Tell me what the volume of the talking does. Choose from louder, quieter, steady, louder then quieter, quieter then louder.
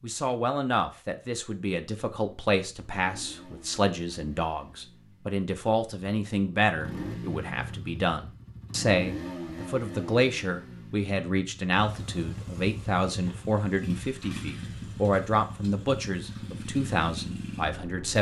steady.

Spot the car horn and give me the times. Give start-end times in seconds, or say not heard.
not heard.